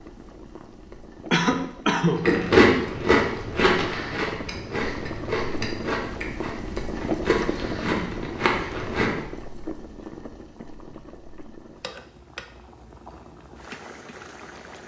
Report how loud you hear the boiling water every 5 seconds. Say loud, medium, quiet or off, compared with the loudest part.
medium, loud, medium.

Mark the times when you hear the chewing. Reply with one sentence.
The chewing can be heard from 2.1 to 9.2 s.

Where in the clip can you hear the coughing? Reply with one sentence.
You can hear the coughing from 1.3 to 2.2 s.